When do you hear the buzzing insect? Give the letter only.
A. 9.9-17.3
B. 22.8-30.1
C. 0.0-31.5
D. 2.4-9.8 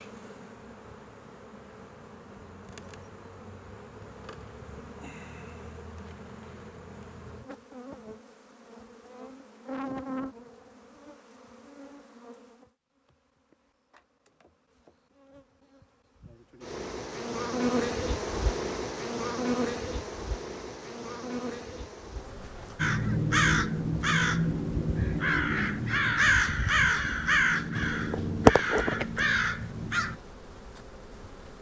C.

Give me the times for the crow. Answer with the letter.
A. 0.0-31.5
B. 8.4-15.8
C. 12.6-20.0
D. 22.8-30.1
D.